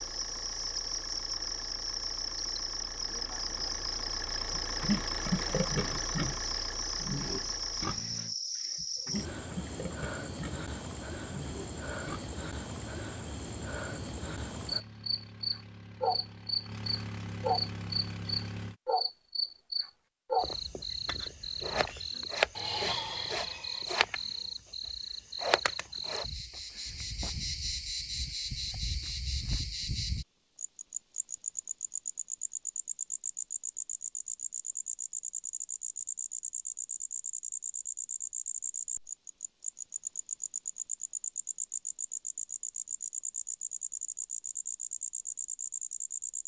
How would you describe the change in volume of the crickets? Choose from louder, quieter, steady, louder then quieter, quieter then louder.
steady.